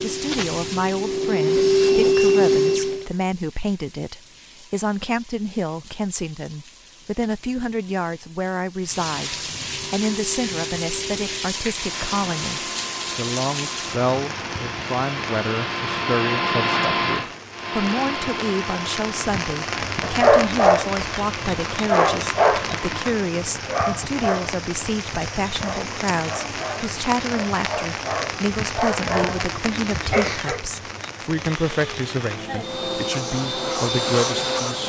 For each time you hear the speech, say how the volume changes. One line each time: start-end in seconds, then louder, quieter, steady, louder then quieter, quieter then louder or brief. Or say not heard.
0.0-34.8 steady.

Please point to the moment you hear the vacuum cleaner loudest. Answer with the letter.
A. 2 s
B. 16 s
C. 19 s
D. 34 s
A.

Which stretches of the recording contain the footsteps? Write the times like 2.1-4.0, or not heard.
not heard.